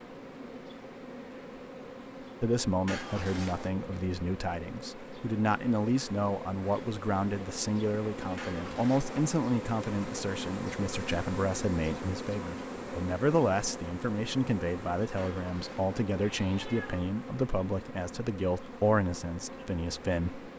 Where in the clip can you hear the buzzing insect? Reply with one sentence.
You can hear the buzzing insect from 0.0 to 20.5 s.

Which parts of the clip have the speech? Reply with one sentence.
You can hear the speech from 2.4 to 20.5 s.